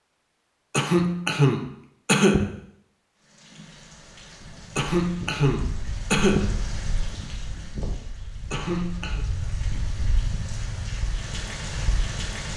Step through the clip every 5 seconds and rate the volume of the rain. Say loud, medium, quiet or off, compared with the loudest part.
quiet, medium, loud.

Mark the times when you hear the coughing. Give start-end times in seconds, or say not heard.
0.7-2.5, 4.8-6.6, 8.5-9.2.